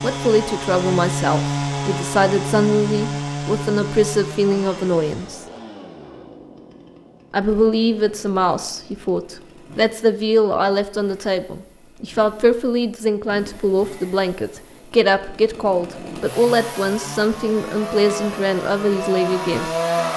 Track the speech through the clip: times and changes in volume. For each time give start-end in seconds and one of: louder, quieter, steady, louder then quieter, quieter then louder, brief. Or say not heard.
0.0-5.4 steady
7.3-19.7 steady.